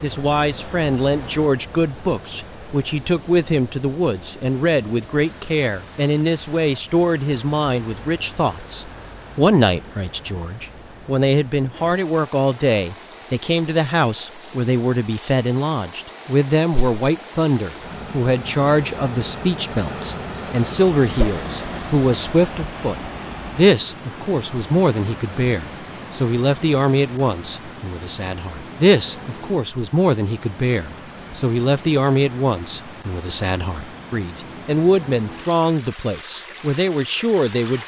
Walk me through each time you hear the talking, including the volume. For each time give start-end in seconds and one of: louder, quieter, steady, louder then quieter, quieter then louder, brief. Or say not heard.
0.0-22.9 steady
23.6-37.8 steady.